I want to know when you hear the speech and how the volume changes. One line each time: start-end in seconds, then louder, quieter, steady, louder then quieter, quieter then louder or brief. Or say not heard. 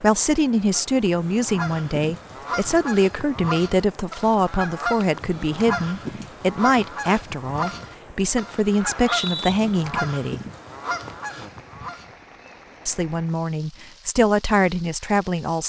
0.0-10.4 steady
12.8-15.6 brief.